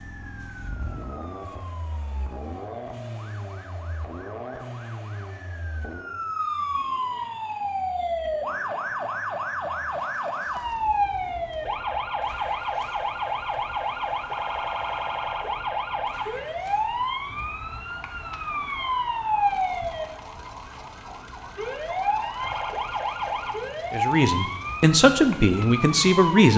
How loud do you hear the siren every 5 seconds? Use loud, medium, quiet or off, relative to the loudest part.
quiet, loud, loud, loud, loud, loud.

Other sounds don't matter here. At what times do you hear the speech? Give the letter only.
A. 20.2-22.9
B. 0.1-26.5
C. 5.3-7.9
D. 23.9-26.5
D.